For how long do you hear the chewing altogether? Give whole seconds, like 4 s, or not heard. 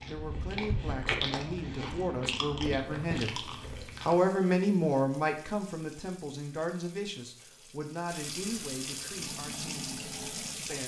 4 s.